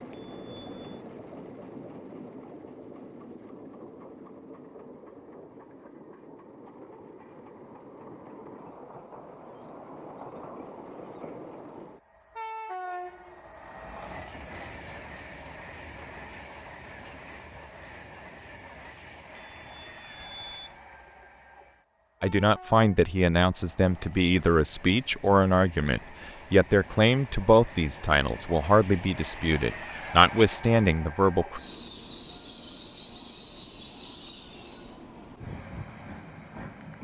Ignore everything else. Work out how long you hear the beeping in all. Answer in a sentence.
You can hear the beeping for 2 seconds altogether.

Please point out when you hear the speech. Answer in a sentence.
You can hear the speech from 22.2 to 31.6 s.